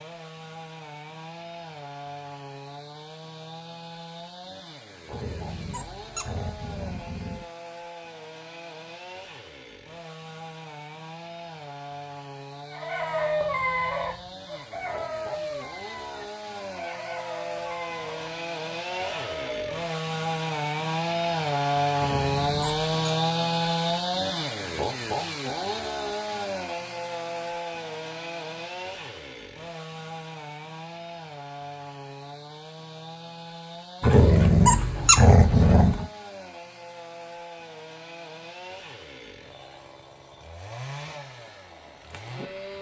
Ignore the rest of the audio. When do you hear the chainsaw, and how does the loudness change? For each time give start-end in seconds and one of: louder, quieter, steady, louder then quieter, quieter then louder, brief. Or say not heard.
0.0-42.7 louder then quieter.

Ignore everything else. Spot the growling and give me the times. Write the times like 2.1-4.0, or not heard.
5.1-7.5, 21.9-22.9, 34.0-36.0.